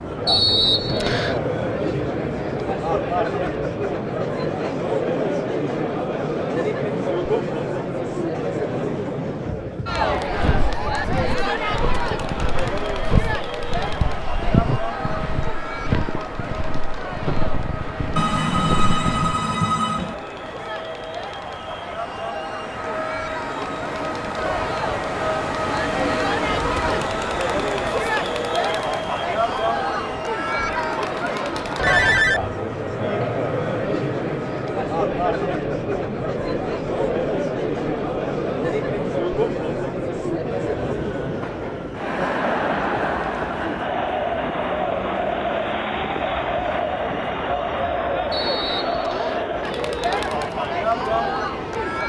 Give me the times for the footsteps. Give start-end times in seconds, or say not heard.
10.2-19.4.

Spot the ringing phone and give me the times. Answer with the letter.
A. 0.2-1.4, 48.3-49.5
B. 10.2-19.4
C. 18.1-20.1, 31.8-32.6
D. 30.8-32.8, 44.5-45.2
C.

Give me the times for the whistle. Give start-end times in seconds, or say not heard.
0.2-1.4, 48.3-49.5.